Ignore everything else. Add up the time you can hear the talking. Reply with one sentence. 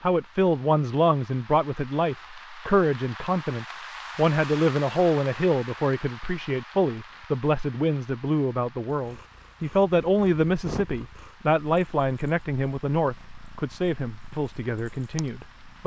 You can hear the talking for 16 seconds altogether.